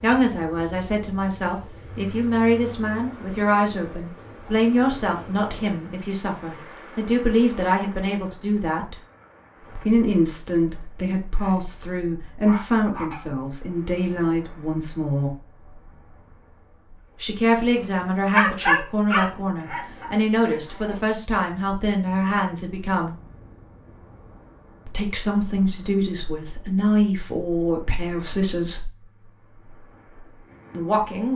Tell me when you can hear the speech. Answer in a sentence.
You can hear the speech from 0.0 to 8.9 s, from 9.8 to 15.3 s, from 17.2 to 23.1 s, from 24.9 to 28.9 s and from 30.7 to 31.3 s.